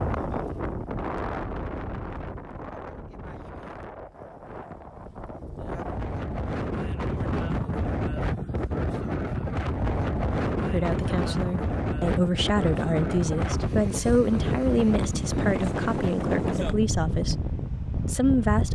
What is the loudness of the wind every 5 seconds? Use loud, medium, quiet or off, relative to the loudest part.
medium, loud, loud, loud.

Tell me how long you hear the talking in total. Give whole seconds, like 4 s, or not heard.
8 s.